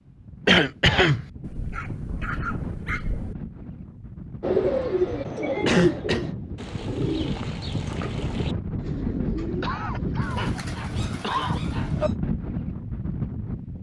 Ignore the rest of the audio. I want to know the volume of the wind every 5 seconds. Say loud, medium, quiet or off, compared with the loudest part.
medium, loud, loud.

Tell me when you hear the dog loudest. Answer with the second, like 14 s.
2 s.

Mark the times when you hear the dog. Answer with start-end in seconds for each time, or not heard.
1.4-3.4, 10.6-12.2.